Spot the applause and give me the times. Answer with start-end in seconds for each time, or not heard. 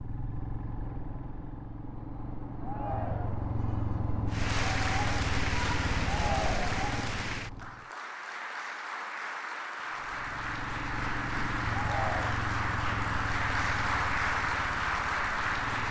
4.2-15.8.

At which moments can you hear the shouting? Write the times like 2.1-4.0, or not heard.
2.6-3.5, 6.0-6.8, 11.7-12.4.